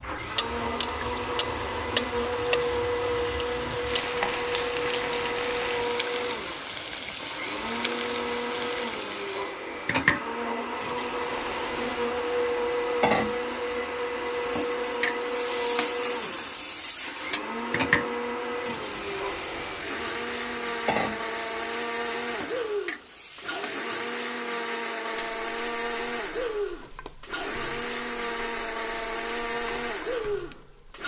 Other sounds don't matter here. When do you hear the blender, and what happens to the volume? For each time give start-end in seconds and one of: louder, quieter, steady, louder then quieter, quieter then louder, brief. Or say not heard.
0.0-31.0 steady.